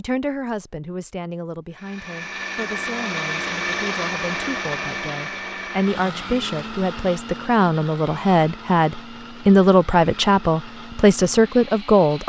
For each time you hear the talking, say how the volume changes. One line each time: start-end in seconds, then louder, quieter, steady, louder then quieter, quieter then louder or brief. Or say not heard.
0.0-12.2 louder.